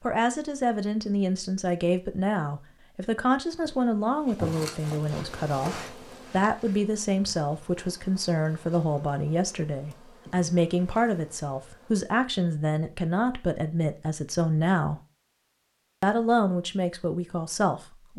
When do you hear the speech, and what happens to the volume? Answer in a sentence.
You can hear the speech from 0.0 to 15.0 s, at a steady volume; and briefly from 16.0 to 18.1 s.